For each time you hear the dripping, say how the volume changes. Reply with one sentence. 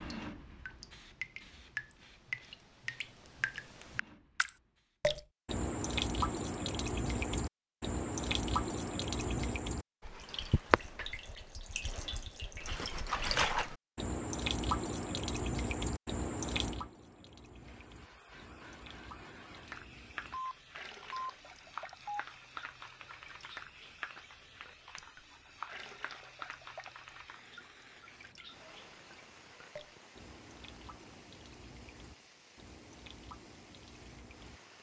The dripping can be heard from 0.2 to 34.6 s, getting quieter.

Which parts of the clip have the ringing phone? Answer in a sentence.
The ringing phone can be heard from 20.3 to 22.2 s.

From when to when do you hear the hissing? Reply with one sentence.
You can hear the hissing from 0.0 to 5.0 s and from 17.6 to 34.7 s.